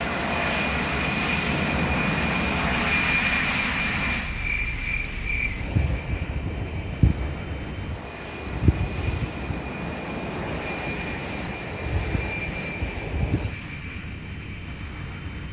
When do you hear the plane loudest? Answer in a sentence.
The loudest moment of the plane is at 3 seconds.